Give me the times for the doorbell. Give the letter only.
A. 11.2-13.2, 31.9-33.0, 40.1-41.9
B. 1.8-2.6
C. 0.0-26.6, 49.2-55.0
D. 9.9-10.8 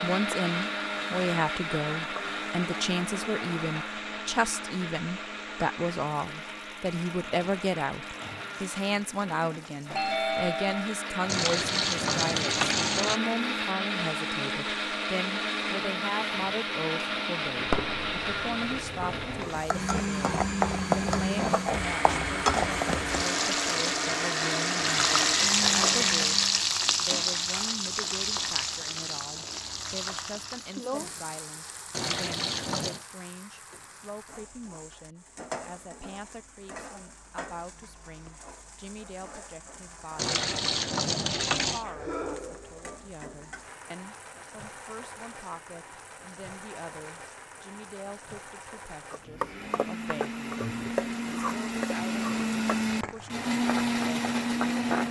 D.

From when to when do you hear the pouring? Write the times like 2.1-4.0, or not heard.
11.2-13.2, 31.9-33.0, 40.1-41.9.